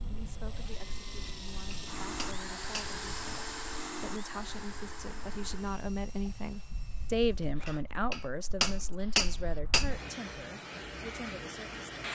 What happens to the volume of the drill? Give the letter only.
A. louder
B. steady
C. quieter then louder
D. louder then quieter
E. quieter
D.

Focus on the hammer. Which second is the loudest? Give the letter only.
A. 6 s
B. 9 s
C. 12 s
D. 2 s
B.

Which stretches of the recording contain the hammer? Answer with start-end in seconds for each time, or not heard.
1.2-3.0, 7.7-9.9.